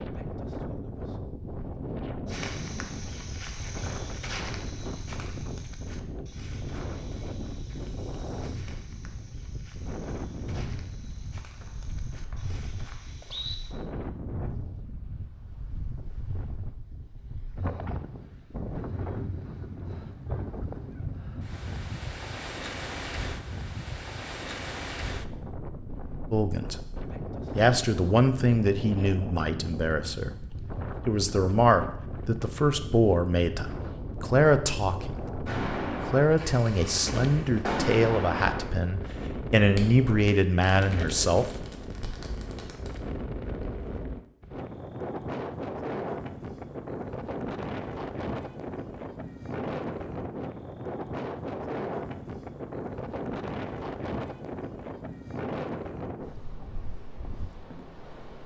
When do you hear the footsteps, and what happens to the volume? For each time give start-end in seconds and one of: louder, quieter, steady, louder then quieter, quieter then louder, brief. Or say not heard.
2.2-13.8 quieter.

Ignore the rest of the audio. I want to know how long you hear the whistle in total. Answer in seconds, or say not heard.
2 s.